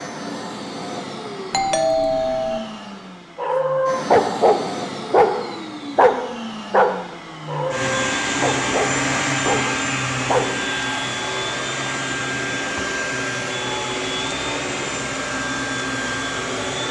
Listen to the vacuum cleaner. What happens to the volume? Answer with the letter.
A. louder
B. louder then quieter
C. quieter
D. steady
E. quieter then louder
A.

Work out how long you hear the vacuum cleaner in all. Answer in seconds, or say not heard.
17 s.